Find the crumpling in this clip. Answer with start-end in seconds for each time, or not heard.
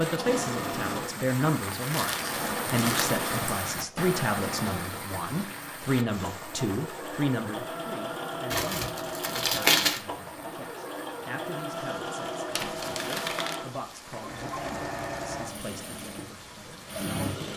1.8-3.1, 8.5-10.0, 12.5-13.6.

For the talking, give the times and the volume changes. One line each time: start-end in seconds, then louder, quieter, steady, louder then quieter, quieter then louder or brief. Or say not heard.
0.0-17.5 quieter.